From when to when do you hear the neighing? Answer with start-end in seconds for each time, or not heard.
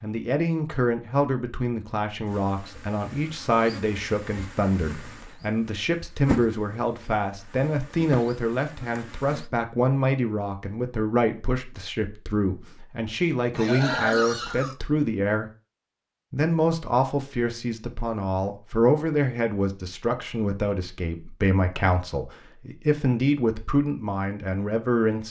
13.5-14.8.